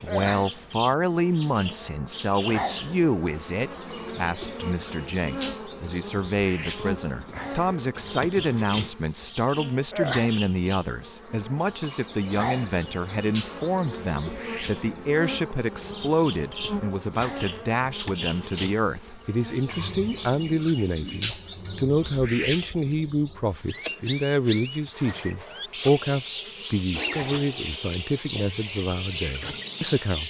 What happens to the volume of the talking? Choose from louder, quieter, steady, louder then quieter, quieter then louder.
steady.